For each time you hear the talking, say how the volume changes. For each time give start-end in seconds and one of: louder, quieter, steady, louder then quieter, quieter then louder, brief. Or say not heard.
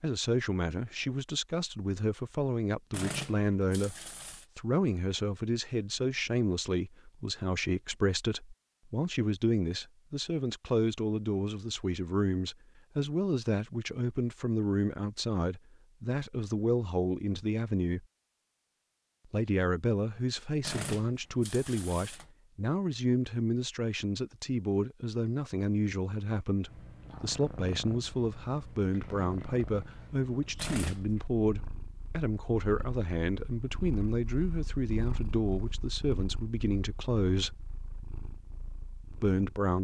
0.0-18.1 steady
19.3-37.6 steady
39.1-39.7 brief.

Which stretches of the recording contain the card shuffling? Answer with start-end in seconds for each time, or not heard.
2.9-4.5, 20.6-22.3, 30.6-31.3.